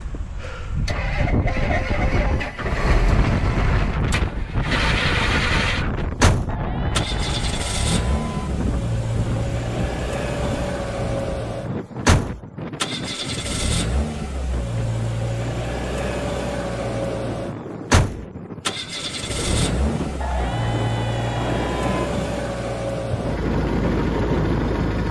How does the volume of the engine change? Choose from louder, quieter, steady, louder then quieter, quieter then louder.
steady.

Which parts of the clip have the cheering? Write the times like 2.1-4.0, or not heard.
6.5-8.5, 20.2-22.1.